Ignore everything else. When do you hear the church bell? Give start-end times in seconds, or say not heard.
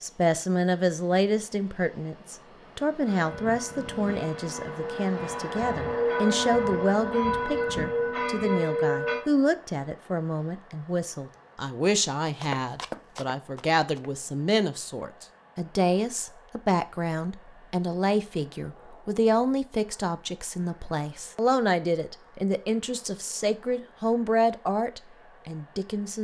3.0-9.2.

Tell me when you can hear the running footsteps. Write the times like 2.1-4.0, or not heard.
12.3-14.2.